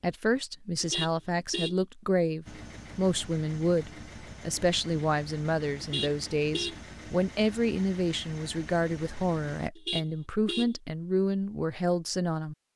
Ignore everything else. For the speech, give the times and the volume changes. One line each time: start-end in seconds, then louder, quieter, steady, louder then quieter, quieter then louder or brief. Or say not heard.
0.0-12.6 steady.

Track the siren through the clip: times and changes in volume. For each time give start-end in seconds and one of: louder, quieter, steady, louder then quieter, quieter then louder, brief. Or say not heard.
not heard.